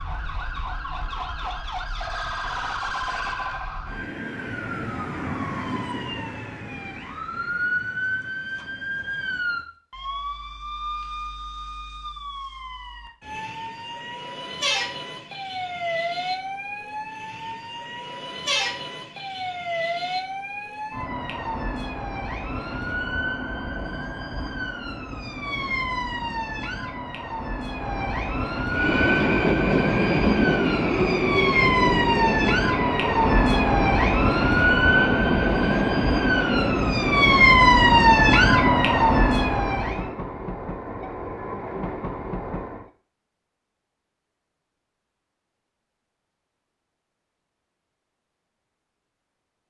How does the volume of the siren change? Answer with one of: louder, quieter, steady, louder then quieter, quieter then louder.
louder.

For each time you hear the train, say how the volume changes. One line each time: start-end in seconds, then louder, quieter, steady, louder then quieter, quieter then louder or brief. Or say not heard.
28.7-42.9 quieter.